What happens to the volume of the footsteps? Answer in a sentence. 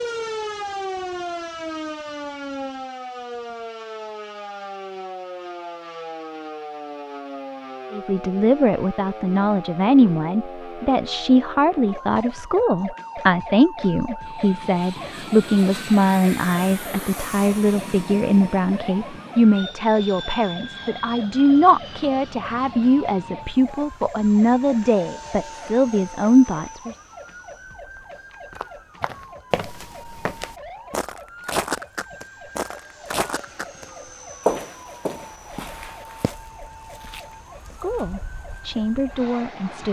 The volume of the footsteps goes up, then down.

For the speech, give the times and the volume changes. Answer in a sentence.
The speech can be heard from 7.9 to 26.9 s, at a steady volume; and briefly from 37.6 to 39.8 s.